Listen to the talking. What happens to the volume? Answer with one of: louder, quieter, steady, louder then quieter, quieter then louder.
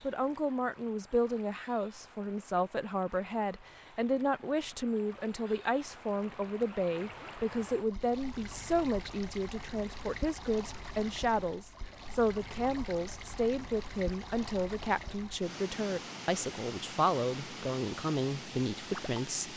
steady.